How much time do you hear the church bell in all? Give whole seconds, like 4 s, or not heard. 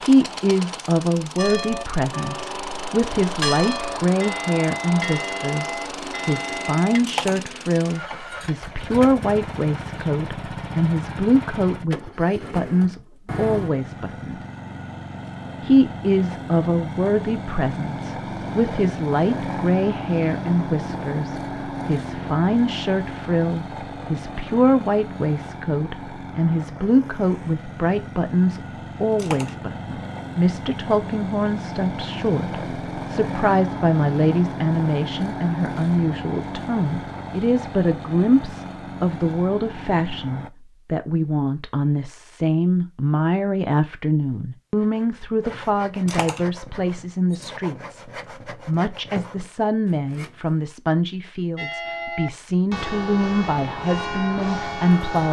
9 s.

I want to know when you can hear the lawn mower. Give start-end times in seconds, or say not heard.
0.0-40.5.